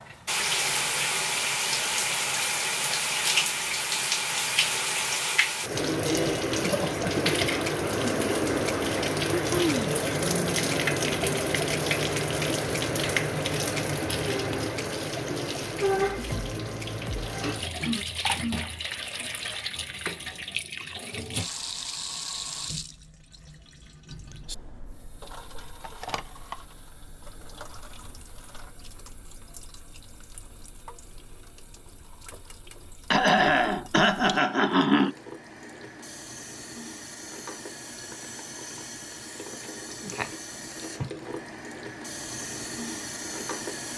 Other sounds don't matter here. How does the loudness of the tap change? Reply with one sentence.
The loudness of the tap goes down, then up.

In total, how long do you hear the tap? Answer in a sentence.
You can hear the tap for 44 seconds altogether.